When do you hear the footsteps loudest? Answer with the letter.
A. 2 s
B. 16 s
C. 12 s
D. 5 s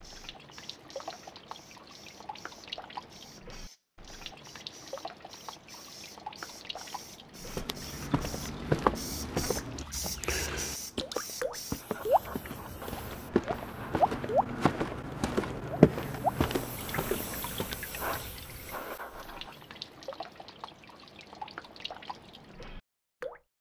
B.